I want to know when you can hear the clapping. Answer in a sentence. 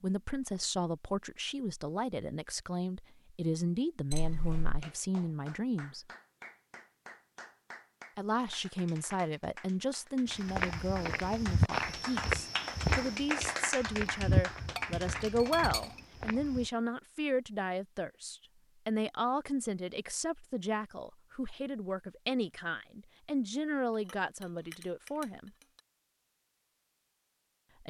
You can hear the clapping from 4.5 to 15.7 s.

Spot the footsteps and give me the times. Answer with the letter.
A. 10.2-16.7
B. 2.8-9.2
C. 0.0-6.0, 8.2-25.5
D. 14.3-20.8
A.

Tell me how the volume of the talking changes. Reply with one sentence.
The volume of the talking stays about the same.